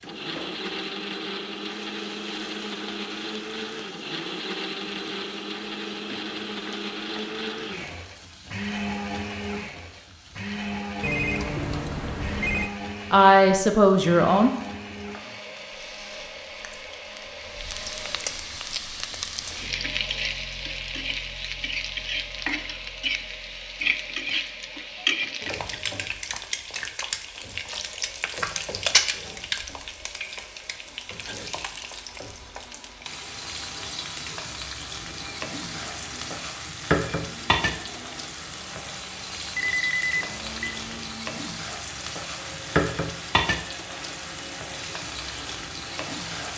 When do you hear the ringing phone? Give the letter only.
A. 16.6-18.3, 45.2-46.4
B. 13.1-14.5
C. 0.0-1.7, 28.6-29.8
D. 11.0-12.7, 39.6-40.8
D.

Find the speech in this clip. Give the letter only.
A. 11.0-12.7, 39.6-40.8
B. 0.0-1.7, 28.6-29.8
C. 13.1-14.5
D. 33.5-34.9
C.